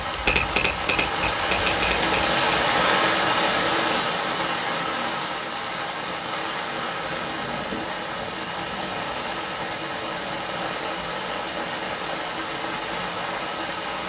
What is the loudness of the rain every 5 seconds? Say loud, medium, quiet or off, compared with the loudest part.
loud, medium, medium.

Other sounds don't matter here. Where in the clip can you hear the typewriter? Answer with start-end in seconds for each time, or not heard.
0.1-2.6.